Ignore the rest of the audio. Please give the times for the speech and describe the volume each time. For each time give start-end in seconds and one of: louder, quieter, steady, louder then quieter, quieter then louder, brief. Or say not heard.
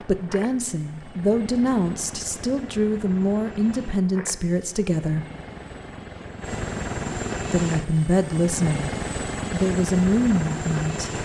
0.0-5.2 steady
7.5-8.9 brief
9.5-11.1 brief.